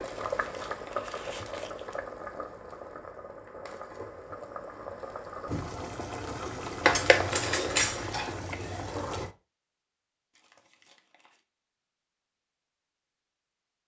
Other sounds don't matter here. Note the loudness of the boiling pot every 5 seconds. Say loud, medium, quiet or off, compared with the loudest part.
loud, loud, off.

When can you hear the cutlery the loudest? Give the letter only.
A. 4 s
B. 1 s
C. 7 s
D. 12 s
C.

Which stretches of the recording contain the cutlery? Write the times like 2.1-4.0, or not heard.
6.8-8.3.